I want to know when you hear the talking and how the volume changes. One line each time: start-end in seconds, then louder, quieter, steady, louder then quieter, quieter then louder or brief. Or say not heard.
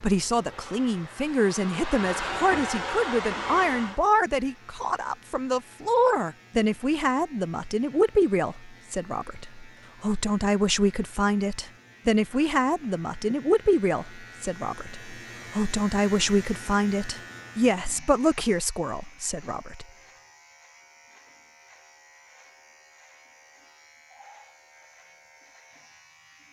0.0-19.9 steady.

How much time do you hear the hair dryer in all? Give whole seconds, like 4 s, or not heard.
4 s.